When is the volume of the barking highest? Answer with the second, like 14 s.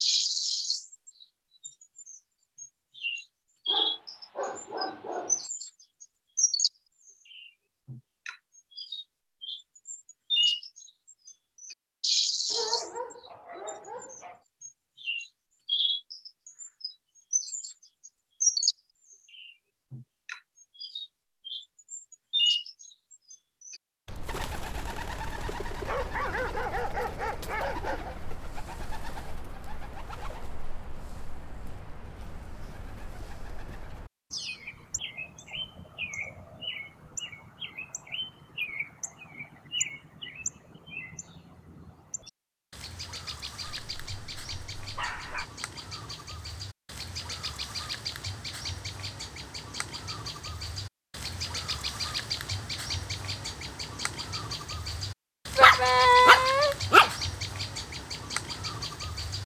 56 s.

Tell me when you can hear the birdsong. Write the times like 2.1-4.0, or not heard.
0.0-59.4.